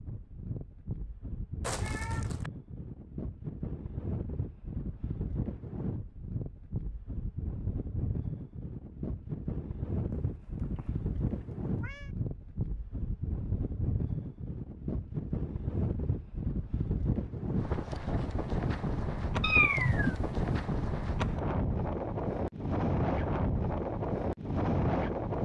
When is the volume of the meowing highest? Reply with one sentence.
The volume of the meowing peaks at 20 seconds.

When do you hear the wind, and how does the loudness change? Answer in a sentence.
The wind can be heard from 0.0 to 25.4 s, getting louder.